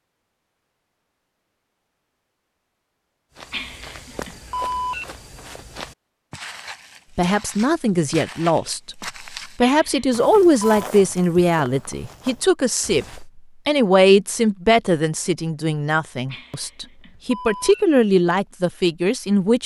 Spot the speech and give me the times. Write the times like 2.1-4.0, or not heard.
7.2-19.6.